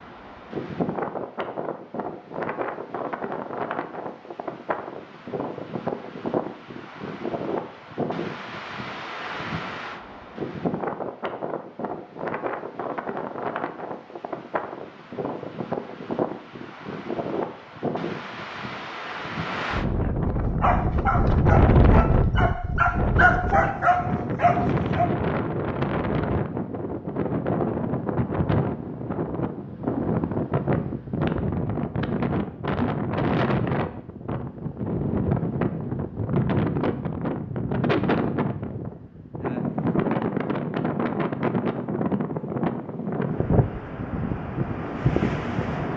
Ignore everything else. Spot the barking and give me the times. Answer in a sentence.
You can hear the barking from 20.6 to 25.1 s.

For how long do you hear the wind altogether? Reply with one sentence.
The wind can be heard for 46 seconds in total.